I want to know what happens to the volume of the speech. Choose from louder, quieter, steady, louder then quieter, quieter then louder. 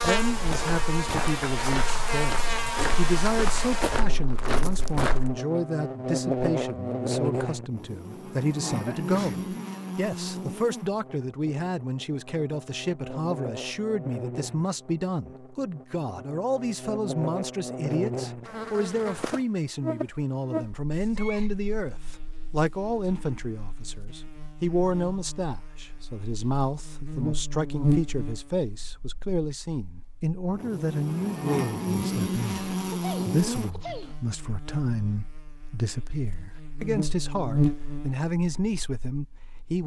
steady.